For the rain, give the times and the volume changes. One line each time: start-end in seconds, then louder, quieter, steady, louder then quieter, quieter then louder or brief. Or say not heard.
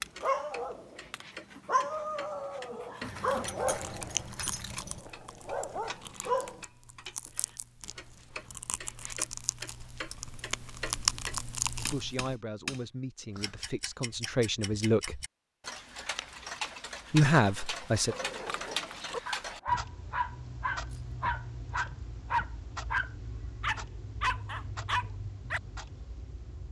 not heard.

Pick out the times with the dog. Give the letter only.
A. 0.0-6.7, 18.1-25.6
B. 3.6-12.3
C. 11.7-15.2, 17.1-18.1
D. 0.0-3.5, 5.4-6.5
A.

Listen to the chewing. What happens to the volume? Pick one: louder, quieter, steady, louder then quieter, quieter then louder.
quieter then louder.